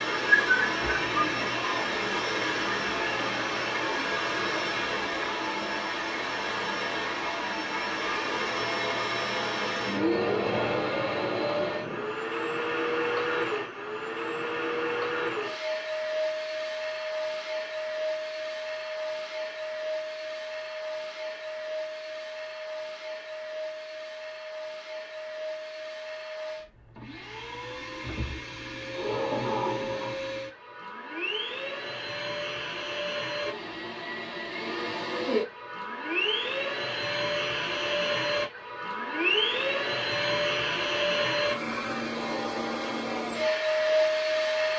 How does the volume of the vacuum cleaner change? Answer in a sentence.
The loudness of the vacuum cleaner goes down, then up.